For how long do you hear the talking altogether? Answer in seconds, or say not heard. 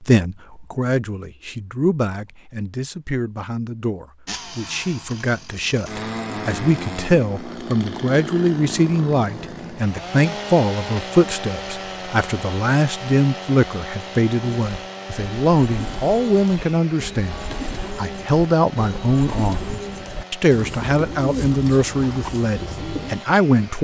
24 s.